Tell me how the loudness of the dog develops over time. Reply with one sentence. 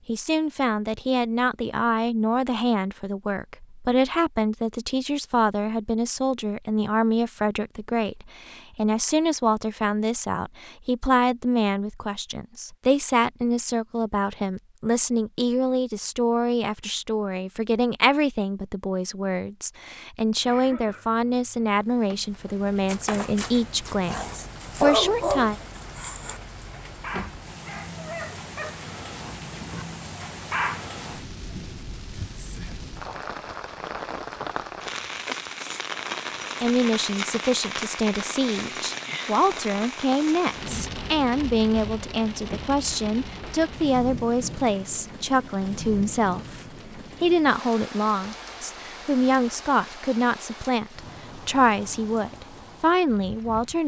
The volume of the dog goes up, then down.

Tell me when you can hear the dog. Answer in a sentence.
You can hear the dog from 22.9 to 30.9 s.